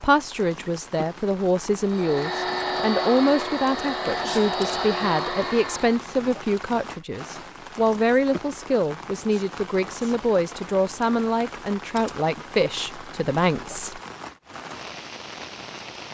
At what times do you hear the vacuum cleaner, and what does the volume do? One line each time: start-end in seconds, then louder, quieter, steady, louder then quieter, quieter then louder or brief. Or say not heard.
1.9-6.0 steady.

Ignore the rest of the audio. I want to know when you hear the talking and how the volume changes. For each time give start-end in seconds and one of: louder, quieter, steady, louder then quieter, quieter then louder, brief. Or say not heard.
0.0-14.0 steady.